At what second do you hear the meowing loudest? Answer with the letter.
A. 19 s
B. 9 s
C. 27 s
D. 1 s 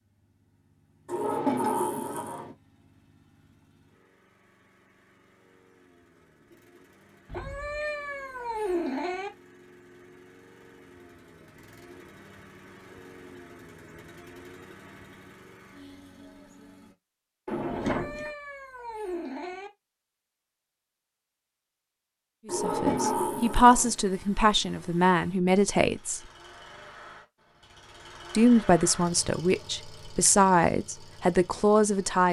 B.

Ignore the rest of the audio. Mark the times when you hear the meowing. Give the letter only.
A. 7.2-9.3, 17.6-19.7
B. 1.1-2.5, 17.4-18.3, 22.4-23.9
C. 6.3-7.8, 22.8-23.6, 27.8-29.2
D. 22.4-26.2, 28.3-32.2
A.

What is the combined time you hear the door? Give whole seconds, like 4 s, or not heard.
4 s.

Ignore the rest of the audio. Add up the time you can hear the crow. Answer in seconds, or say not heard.
not heard.